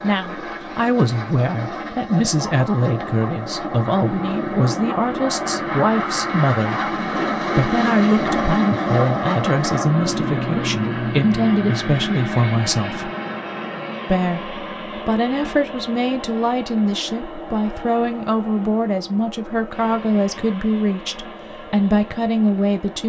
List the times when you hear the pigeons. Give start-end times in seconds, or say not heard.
not heard.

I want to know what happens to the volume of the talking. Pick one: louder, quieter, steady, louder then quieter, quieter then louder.
steady.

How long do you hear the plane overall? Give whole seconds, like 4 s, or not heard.
23 s.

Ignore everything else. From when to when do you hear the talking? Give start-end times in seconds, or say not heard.
0.0-6.9, 7.5-13.1, 14.1-23.0.